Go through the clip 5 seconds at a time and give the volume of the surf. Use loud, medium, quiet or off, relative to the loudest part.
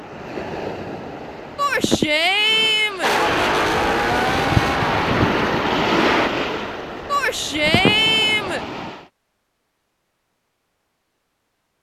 loud, loud, off.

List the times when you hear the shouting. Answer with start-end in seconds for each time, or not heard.
1.6-3.1, 7.0-8.7.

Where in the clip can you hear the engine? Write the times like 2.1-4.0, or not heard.
3.0-6.3.